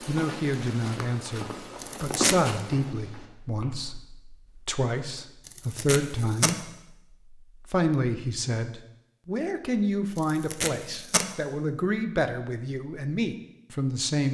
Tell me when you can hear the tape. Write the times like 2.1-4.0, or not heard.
1.8-2.5, 5.5-6.5, 10.2-11.3.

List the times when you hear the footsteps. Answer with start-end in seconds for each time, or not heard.
0.0-4.0.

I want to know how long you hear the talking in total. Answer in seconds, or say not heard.
13 s.